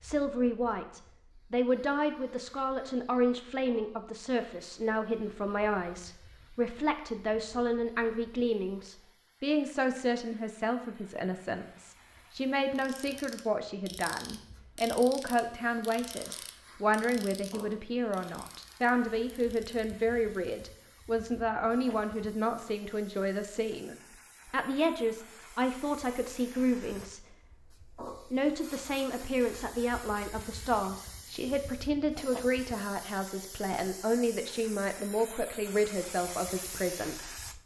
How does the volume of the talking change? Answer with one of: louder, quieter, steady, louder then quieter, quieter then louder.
steady.